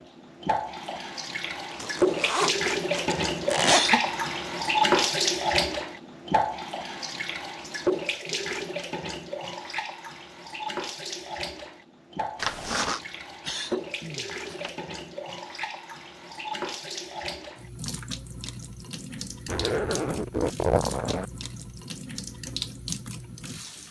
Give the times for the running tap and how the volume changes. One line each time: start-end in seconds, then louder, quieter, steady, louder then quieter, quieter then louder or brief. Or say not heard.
0.0-23.8 quieter.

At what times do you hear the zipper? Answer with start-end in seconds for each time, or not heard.
1.7-4.0, 12.3-13.0, 19.4-21.2.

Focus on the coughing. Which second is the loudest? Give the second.
4 s.